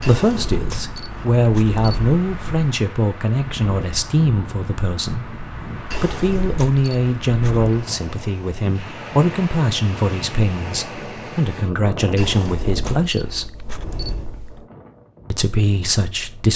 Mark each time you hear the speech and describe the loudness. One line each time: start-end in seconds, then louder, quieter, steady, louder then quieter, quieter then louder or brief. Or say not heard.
0.0-13.6 steady
15.3-16.5 brief.